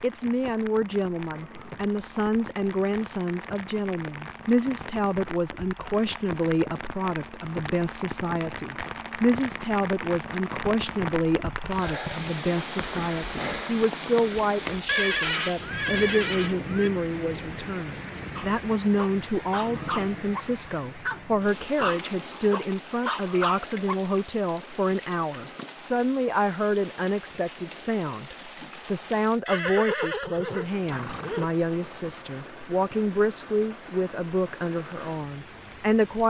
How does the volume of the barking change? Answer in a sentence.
The volume of the barking goes up.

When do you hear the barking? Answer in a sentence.
You can hear the barking from 18.4 to 24.1 s.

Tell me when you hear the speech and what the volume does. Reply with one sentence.
The speech can be heard from 0.0 to 36.2 s, at a steady volume.